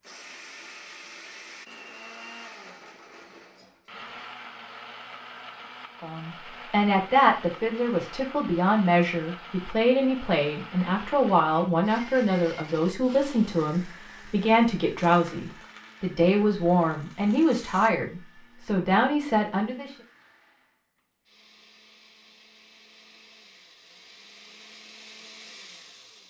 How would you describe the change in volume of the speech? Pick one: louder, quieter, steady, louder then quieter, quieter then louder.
steady.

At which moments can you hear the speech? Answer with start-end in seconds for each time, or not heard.
6.0-19.9.